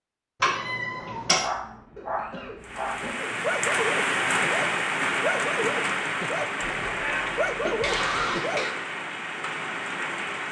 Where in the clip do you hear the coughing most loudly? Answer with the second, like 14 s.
8 s.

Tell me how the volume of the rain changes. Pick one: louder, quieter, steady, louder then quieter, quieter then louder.
quieter.